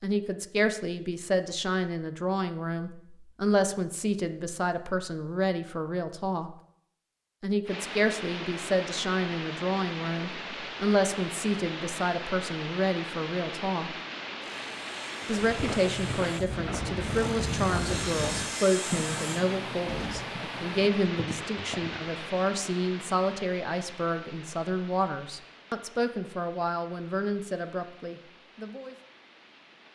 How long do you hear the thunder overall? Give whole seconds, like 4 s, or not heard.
2 s.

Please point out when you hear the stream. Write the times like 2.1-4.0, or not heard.
7.7-29.9.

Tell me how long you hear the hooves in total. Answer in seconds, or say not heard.
7 s.